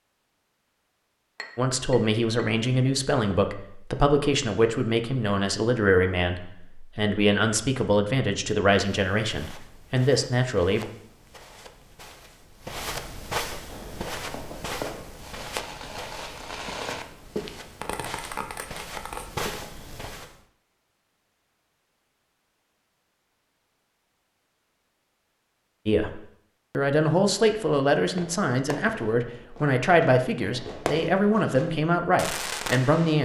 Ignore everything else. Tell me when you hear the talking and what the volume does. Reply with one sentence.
You can hear the talking from 1.6 to 10.8 s, at a steady volume; and from 25.9 to 33.2 s, at a steady volume.